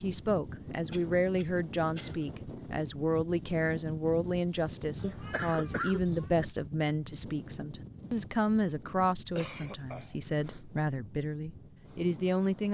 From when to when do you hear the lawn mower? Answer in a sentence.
You can't hear the lawn mower here.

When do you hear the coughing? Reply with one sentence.
The coughing can be heard from 0.9 to 2.3 s, from 5.0 to 6.5 s and from 9.3 to 10.7 s.